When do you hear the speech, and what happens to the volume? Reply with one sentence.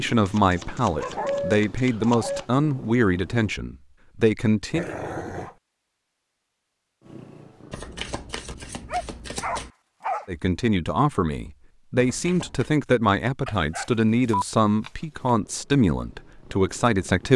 The speech can be heard from 0.0 to 4.8 s, at a steady volume; and from 10.2 to 17.3 s, at a steady volume.